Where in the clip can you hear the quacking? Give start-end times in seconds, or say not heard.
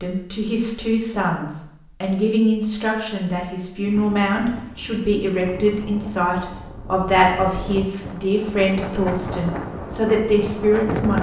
not heard.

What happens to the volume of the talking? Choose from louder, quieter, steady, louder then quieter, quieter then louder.
steady.